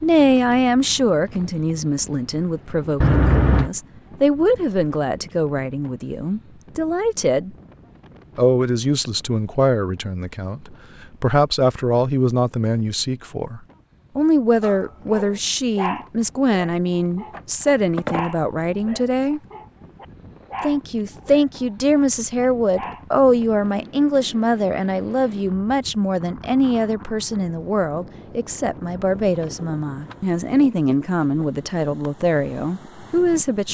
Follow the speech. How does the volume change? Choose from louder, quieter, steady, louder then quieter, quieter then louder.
steady.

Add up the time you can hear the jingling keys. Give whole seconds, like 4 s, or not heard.
3 s.